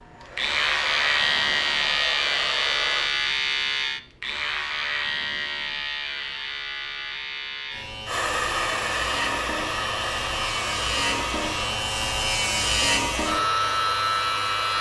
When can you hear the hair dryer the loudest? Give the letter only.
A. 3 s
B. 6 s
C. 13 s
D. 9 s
D.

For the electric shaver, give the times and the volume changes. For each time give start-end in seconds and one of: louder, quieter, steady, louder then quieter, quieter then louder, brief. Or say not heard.
0.3-14.7 quieter then louder.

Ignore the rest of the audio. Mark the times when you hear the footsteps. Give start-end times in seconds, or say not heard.
not heard.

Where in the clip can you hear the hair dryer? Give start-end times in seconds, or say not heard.
0.0-3.1, 8.1-14.7.